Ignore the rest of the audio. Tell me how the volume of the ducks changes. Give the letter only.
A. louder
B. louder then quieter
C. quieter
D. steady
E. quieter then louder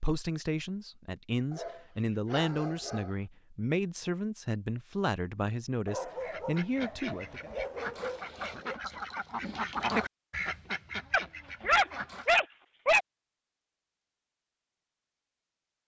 B.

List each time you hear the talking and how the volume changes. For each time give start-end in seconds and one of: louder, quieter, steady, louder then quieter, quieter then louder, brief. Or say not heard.
0.0-7.5 steady.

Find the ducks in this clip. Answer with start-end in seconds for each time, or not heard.
6.2-12.4.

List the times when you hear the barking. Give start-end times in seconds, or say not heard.
1.5-3.1, 5.8-8.8, 11.1-13.1.